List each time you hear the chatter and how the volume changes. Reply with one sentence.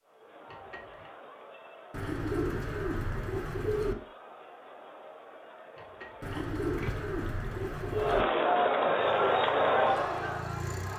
The chatter can be heard from 0.0 to 10.9 s, getting louder.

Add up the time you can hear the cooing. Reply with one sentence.
The cooing can be heard for 4 seconds in total.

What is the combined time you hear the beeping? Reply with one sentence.
The beeping can be heard for 2 seconds in total.